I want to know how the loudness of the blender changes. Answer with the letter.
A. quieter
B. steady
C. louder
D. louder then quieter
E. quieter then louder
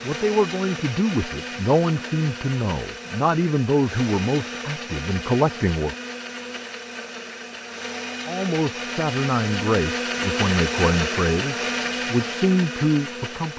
C.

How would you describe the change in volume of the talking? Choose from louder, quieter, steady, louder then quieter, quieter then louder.
steady.